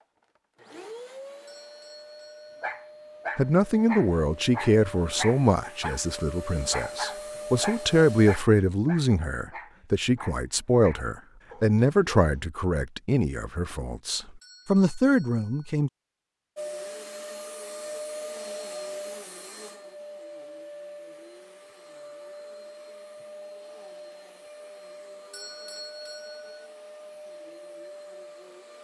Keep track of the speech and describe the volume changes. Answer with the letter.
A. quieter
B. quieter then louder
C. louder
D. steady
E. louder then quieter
D.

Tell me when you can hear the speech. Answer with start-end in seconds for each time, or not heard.
3.4-15.9.